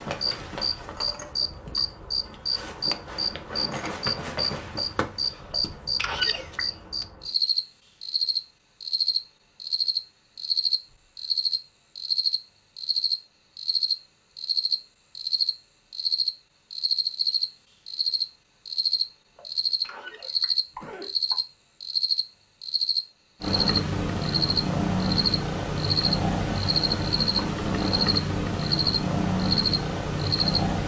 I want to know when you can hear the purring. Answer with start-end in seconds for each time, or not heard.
23.4-30.8.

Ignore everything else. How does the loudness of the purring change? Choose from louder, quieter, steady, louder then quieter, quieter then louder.
steady.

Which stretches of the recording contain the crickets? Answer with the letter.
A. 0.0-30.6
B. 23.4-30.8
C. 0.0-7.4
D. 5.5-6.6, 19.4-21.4
A.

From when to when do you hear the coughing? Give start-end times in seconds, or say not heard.
5.5-6.6, 19.4-21.4.